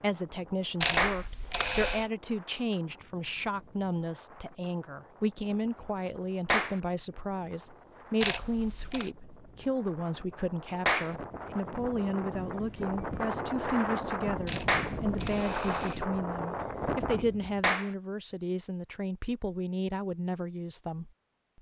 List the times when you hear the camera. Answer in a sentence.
The camera can be heard from 0.8 to 2.1 s, from 8.2 to 9.1 s and from 14.4 to 16.1 s.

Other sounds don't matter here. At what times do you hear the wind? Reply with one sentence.
You can hear the wind from 0.0 to 17.6 s.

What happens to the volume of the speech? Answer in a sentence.
The loudness of the speech stays about the same.